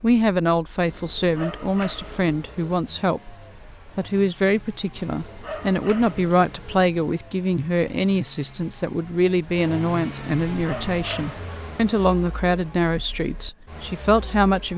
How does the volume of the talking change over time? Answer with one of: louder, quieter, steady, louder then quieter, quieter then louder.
steady.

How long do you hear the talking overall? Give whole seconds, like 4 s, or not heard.
14 s.